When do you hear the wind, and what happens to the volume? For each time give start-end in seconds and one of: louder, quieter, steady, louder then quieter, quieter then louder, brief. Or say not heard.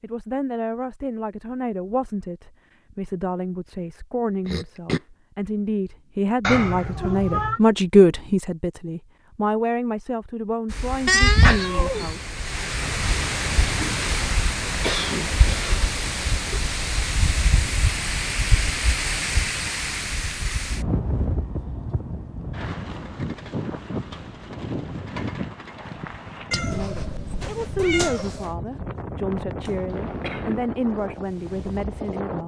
10.7-32.4 quieter.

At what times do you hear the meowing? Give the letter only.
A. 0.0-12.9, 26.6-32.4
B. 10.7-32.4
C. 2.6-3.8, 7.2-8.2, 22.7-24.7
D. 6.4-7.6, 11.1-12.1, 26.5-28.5
D.